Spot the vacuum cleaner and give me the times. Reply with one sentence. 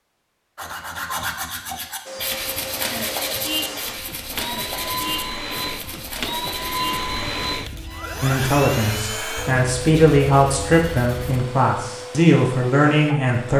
You can hear the vacuum cleaner from 2.0 to 13.5 s.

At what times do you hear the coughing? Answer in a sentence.
You can't hear the coughing here.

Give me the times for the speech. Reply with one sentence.
You can hear the speech from 8.2 to 13.5 s.